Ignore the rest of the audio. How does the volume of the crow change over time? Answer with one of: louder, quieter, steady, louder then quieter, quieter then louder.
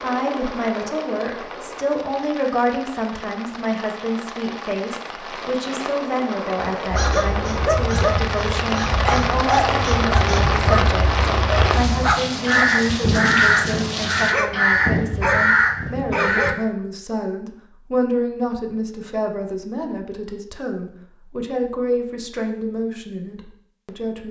louder.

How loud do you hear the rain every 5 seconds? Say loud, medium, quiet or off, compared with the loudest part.
medium, loud, loud, off, off.